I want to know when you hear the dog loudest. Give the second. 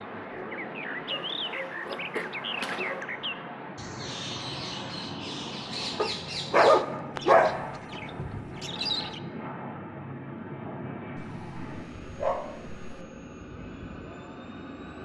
7 s.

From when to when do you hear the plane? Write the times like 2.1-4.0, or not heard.
0.0-14.9.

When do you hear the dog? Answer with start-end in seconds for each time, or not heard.
1.1-3.0, 6.0-7.5, 11.2-13.0.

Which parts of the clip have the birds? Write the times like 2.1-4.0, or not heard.
0.0-9.2.